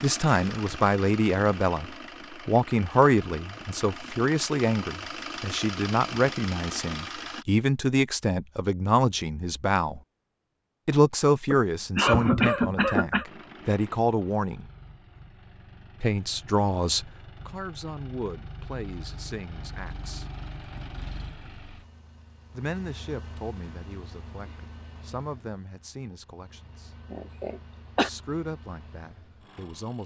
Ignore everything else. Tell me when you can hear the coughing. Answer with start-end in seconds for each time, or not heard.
11.5-13.2, 27.1-28.1.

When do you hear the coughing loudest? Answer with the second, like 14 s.
12 s.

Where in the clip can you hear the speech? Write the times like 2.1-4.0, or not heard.
0.0-10.0, 10.8-14.7, 16.0-20.2, 22.5-26.9, 28.0-30.0.